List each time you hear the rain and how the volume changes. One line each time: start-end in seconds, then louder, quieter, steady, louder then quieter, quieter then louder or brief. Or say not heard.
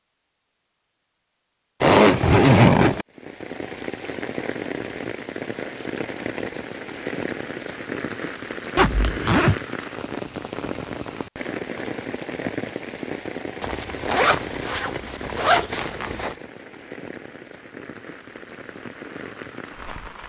3.1-20.2 quieter.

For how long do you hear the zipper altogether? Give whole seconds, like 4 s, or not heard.
5 s.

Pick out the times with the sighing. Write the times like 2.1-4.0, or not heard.
not heard.